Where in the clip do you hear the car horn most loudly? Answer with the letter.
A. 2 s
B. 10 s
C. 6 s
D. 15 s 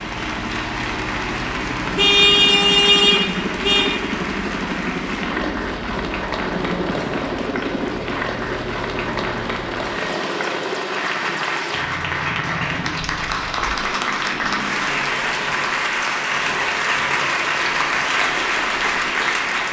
A.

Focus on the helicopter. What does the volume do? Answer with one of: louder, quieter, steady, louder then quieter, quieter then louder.
quieter.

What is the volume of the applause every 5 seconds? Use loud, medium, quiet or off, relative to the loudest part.
medium, medium, loud, loud.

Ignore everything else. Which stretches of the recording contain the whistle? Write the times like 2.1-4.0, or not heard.
not heard.